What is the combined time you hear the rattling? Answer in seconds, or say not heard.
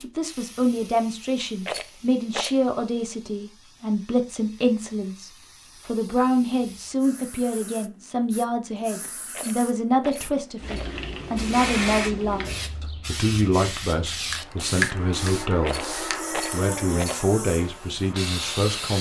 4 s.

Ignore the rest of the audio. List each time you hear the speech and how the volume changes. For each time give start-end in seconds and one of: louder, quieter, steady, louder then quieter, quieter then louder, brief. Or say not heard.
0.0-18.9 steady.